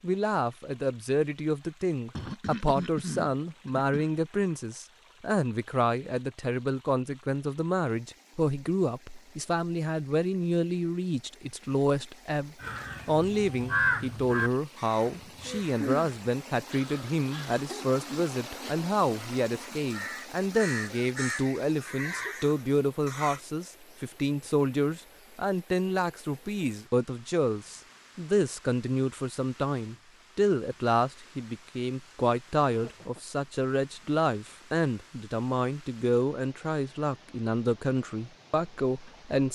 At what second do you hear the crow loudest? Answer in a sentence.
The volume of the crow peaks at 14 seconds.